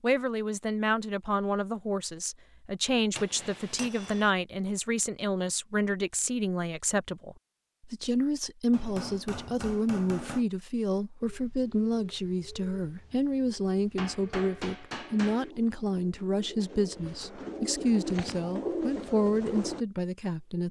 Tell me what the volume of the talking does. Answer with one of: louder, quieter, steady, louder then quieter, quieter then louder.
steady.